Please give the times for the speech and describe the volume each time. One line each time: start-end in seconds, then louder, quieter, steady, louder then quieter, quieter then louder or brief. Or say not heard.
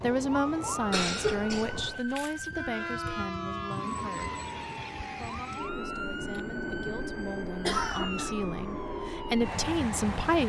0.0-4.4 quieter
5.2-10.4 louder.